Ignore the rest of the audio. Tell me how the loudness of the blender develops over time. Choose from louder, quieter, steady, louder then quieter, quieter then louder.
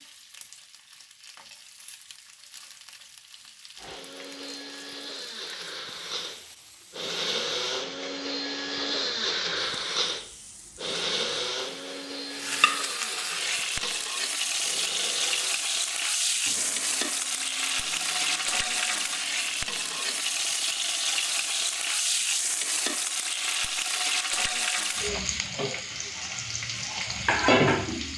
louder then quieter.